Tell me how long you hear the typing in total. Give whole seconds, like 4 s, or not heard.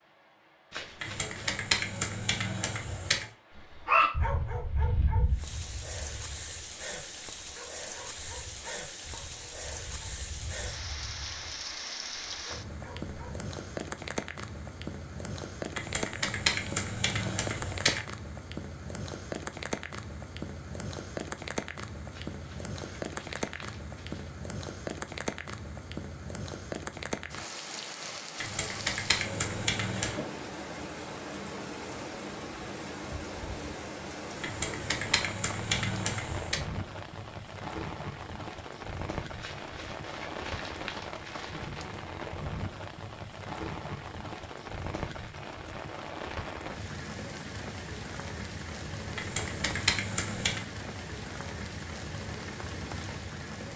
10 s.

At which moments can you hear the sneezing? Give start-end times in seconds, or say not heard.
not heard.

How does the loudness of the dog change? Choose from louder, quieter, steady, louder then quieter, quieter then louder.
quieter.